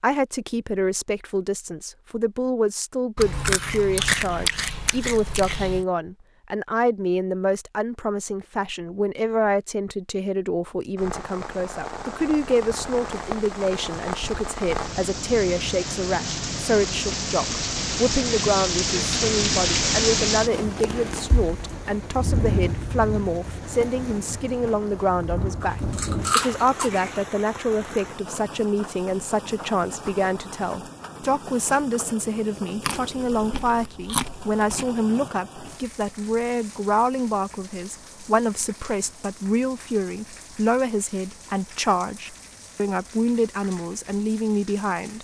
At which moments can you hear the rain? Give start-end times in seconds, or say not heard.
10.9-45.1.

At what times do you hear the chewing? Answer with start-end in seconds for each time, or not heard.
3.1-5.8, 25.6-27.2, 32.8-34.9.